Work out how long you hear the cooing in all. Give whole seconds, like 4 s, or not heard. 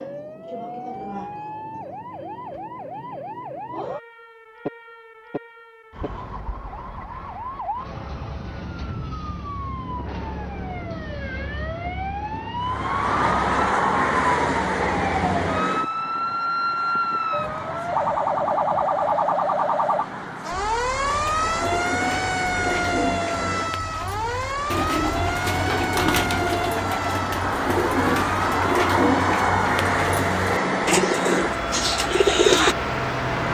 12 s.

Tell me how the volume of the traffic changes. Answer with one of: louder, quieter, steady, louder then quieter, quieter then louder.
quieter then louder.